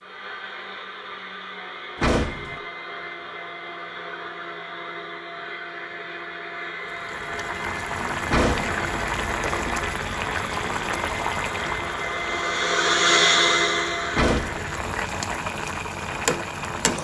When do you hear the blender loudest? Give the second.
13 s.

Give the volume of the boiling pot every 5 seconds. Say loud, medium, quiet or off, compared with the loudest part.
off, loud, loud, loud.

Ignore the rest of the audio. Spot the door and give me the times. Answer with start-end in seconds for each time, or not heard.
1.9-2.6, 8.2-8.8, 14.1-14.8.